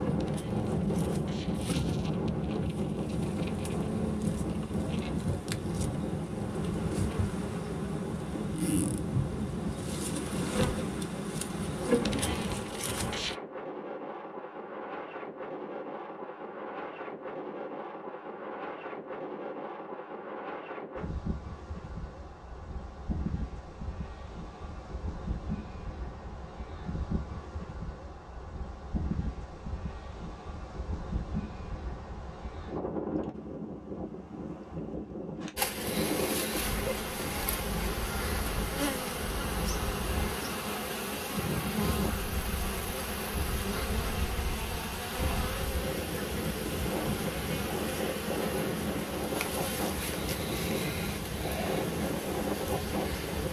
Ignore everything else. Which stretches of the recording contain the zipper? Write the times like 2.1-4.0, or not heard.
not heard.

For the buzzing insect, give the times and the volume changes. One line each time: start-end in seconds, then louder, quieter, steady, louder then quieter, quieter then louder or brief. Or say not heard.
0.0-13.3 louder
35.5-53.4 steady.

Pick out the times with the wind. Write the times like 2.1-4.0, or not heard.
0.0-53.4.